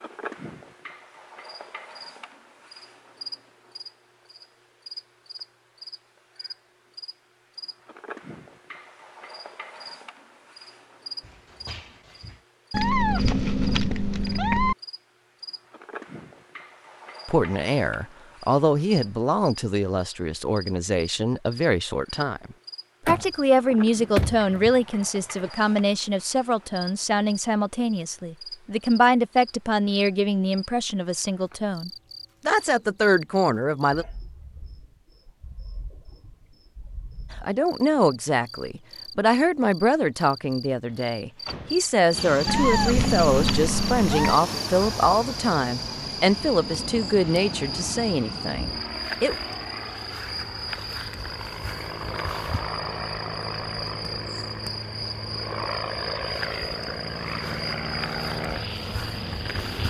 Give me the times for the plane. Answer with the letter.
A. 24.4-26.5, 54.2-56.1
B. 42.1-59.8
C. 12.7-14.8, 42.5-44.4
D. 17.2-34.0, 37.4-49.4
B.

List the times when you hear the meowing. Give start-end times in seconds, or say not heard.
12.7-14.8, 42.5-44.4.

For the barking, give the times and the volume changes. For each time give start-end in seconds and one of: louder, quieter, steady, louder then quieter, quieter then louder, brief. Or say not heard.
not heard.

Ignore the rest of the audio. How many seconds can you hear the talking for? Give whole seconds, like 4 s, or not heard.
29 s.